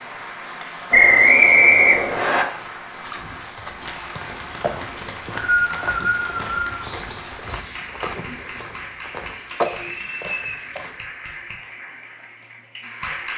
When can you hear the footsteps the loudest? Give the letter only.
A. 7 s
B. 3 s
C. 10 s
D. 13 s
C.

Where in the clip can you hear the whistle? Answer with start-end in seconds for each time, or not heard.
0.9-2.5, 5.0-6.8, 9.7-10.6.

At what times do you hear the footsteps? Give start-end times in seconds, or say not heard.
3.0-11.1.